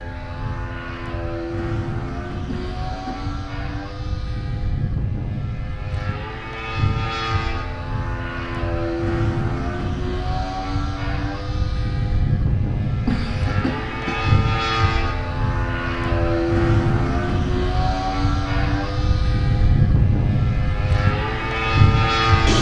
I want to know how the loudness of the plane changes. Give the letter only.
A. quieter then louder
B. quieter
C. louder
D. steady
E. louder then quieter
C.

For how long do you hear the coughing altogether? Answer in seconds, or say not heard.
2 s.